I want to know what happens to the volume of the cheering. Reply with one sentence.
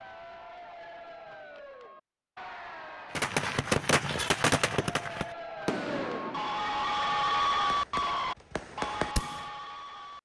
The volume of the cheering goes up, then down.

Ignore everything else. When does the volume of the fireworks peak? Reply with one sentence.
The volume of the fireworks peaks at 4 seconds.